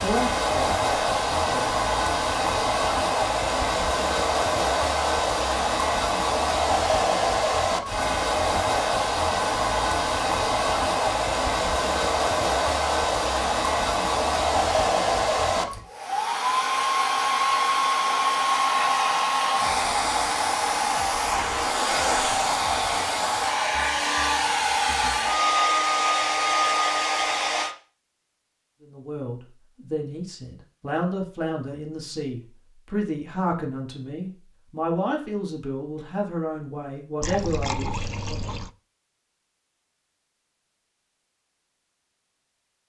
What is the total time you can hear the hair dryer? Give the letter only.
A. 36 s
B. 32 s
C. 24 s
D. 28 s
D.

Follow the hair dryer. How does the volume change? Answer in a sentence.
The volume of the hair dryer stays about the same.